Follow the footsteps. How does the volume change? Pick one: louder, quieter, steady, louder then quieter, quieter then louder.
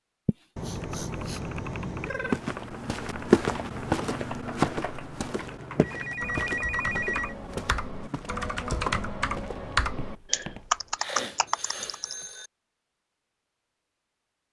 quieter.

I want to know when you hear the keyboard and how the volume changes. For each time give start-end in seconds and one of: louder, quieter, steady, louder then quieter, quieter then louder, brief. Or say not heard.
0.8-12.2 louder.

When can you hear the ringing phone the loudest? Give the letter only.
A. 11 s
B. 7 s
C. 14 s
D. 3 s
B.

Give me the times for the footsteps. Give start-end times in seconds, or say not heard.
2.2-11.0.